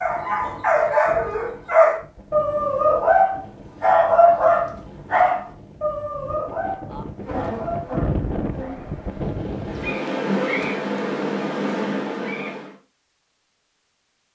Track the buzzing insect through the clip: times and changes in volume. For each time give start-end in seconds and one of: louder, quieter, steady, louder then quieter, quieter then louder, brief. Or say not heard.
7.2-12.7 louder.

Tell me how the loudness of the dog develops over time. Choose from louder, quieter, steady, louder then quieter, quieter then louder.
quieter.